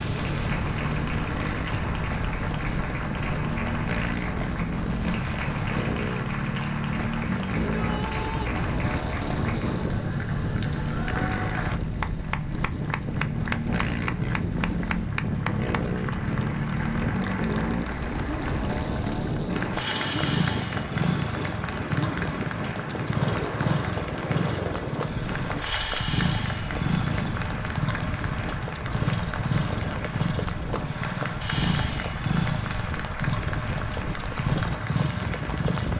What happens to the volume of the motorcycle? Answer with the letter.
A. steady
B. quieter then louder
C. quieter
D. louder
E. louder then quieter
A.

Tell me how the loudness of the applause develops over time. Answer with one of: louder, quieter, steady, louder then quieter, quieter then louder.
steady.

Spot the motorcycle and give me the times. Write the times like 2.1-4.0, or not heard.
0.0-35.9.